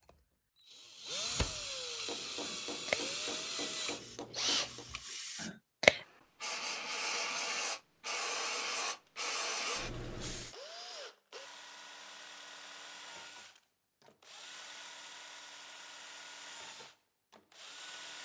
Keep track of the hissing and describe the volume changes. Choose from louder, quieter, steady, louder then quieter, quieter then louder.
louder then quieter.